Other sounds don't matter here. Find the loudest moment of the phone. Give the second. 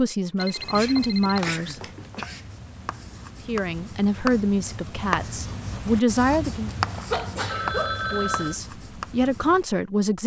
8 s.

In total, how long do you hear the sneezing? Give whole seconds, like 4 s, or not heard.
3 s.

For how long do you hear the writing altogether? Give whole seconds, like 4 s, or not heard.
9 s.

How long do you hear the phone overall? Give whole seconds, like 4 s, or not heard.
3 s.